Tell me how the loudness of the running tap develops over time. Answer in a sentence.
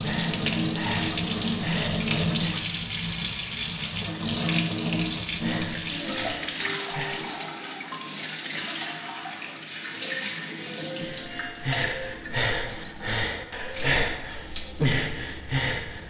The volume of the running tap goes down.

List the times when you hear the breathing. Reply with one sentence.
The breathing can be heard from 0.0 to 2.6 s, from 5.2 to 7.3 s and from 11.0 to 16.0 s.